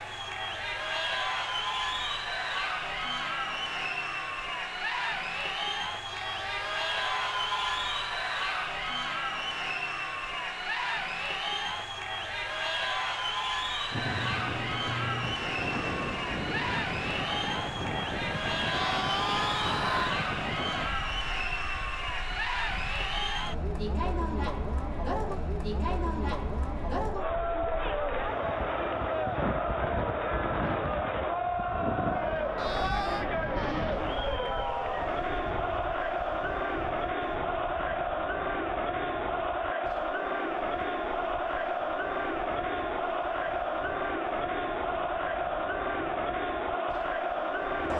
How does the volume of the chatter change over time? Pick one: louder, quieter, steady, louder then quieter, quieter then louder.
steady.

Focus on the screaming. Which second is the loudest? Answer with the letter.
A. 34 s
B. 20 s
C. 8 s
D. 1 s
B.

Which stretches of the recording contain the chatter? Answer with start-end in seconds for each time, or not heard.
0.0-47.9.